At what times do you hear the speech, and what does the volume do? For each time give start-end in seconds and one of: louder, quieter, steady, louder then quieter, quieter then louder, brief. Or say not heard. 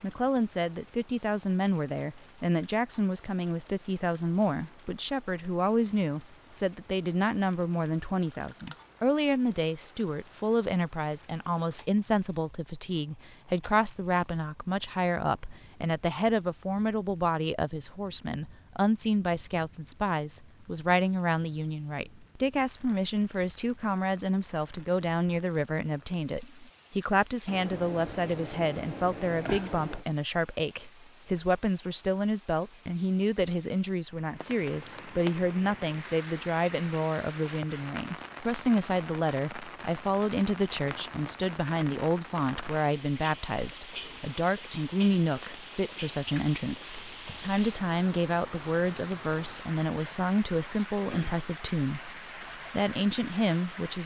0.0-54.0 steady.